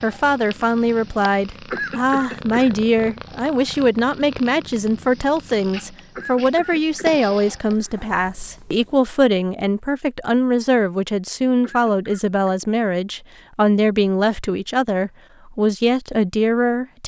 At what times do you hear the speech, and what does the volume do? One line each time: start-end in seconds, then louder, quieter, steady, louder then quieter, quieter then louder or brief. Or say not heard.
0.0-17.0 steady.